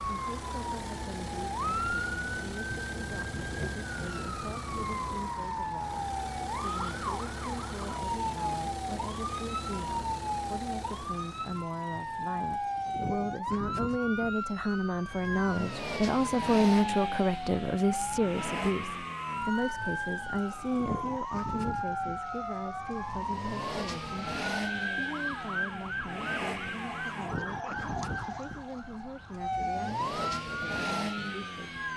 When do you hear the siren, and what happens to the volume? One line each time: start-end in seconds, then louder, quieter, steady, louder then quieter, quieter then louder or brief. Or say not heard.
0.0-31.9 steady.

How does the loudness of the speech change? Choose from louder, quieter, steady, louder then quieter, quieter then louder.
louder then quieter.